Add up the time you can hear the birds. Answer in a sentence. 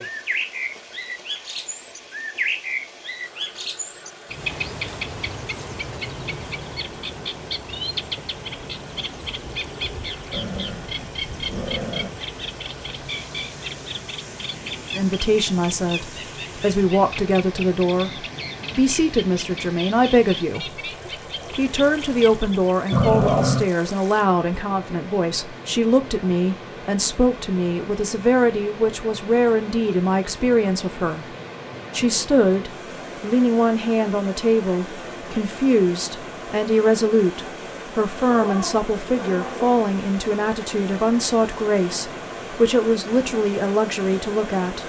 You can hear the birds for 23 seconds altogether.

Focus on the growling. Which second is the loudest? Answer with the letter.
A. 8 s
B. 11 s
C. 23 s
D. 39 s
C.